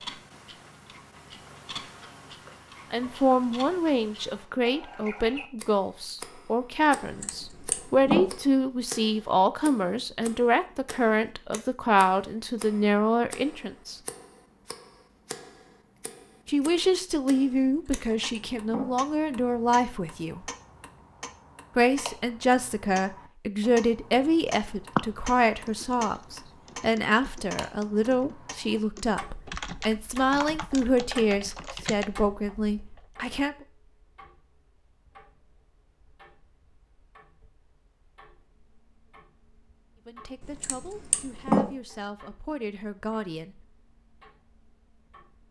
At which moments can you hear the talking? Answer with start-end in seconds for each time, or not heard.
2.9-14.0, 16.4-20.4, 21.8-33.5, 40.0-43.6.